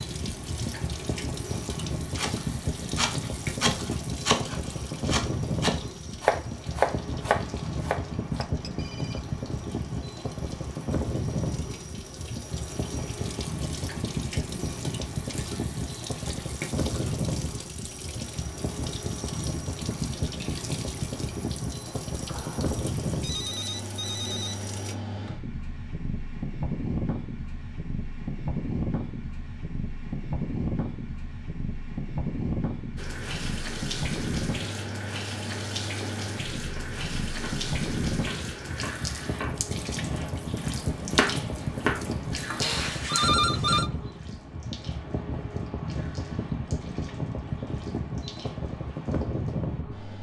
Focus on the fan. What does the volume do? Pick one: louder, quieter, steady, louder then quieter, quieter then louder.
steady.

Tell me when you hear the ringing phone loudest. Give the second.
43 s.